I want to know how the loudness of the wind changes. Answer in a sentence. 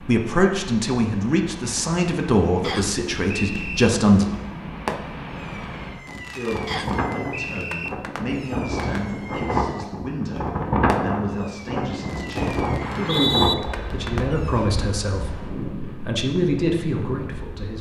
The volume of the wind goes up, then down.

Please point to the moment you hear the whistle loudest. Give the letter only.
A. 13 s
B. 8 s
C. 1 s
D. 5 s
A.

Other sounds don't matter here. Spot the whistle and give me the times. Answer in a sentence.
The whistle can be heard from 2.6 to 3.9 s, from 6.7 to 7.9 s and from 12.8 to 13.6 s.